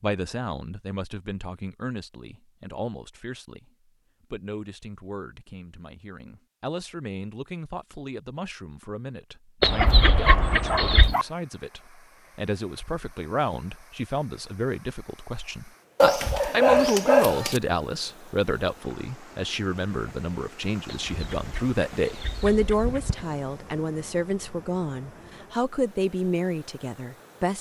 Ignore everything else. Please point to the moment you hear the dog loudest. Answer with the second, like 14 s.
17 s.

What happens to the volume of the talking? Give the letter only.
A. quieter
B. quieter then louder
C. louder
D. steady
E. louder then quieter
C.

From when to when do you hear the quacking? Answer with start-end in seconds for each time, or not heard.
9.6-11.2, 20.9-23.2.